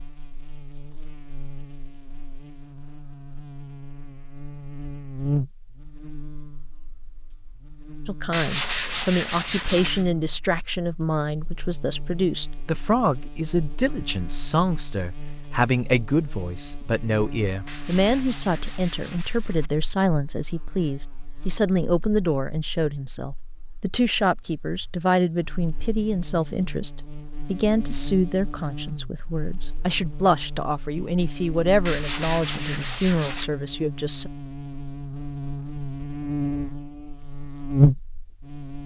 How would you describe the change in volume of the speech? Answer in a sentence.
The volume of the speech stays about the same.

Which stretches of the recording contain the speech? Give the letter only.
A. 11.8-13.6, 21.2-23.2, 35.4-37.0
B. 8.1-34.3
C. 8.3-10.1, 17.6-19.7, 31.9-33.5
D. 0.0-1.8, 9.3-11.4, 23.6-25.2
B.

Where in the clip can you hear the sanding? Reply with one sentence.
You can hear the sanding from 8.3 to 10.1 s, from 17.6 to 19.7 s and from 31.9 to 33.5 s.